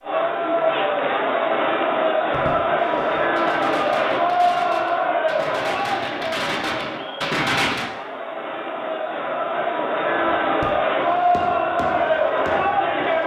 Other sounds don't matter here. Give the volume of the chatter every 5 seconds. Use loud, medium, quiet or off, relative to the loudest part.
loud, medium, loud.